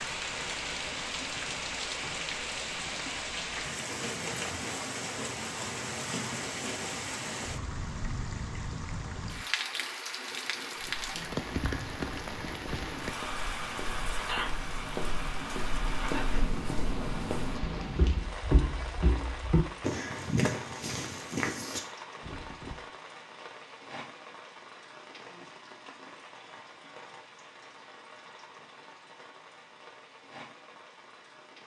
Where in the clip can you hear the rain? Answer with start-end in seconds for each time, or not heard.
0.0-31.6.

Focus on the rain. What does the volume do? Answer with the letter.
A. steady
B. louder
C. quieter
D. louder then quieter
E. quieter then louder
C.